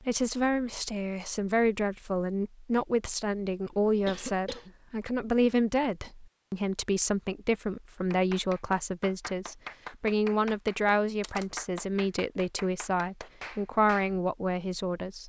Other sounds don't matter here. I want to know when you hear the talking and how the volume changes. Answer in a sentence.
The talking can be heard from 0.0 to 15.2 s, at a steady volume.